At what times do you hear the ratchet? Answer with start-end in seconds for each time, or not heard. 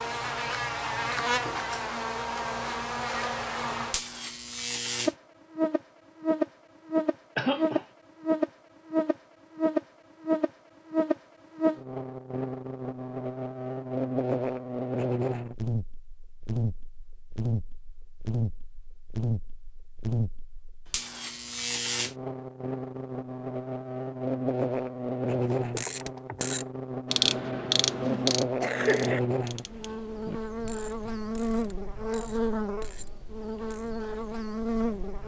25.4-34.0.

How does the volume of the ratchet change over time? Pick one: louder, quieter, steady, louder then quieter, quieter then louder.
quieter.